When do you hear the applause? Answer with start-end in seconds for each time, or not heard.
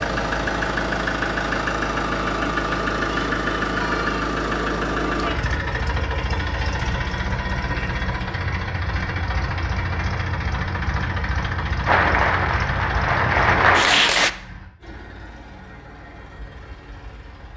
11.8-14.3.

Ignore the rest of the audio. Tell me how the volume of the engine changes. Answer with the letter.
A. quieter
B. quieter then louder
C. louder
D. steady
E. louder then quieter
A.